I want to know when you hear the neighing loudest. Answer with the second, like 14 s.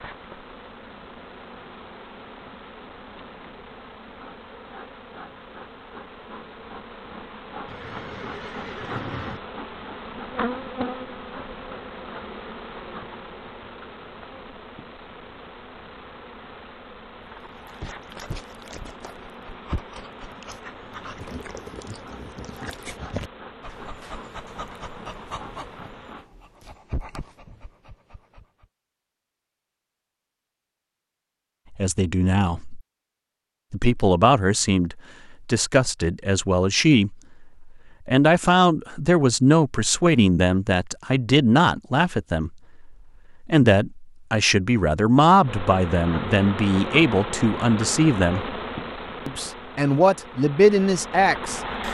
9 s.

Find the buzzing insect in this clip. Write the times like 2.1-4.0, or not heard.
0.0-26.3, 45.4-51.8.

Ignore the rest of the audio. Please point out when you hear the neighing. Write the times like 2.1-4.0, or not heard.
7.7-9.4.